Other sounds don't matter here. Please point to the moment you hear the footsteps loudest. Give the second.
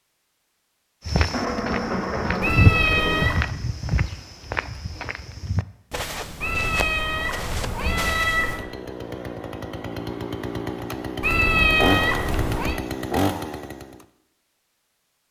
3 s.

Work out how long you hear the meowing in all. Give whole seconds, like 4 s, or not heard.
5 s.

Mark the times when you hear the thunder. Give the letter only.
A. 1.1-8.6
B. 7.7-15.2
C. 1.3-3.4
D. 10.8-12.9
C.